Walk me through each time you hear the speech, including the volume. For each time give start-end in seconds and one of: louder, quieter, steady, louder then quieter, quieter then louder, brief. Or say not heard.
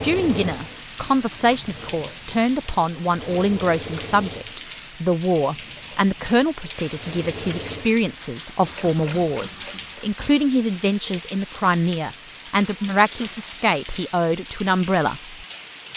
0.0-15.3 steady.